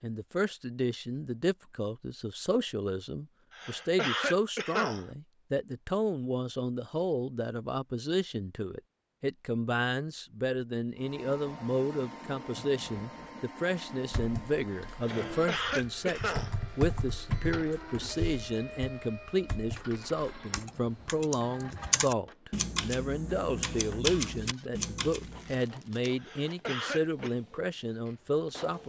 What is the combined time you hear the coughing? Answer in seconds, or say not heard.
4 s.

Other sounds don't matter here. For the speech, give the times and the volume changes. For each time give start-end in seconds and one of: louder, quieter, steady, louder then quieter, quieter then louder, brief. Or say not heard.
0.0-28.8 steady.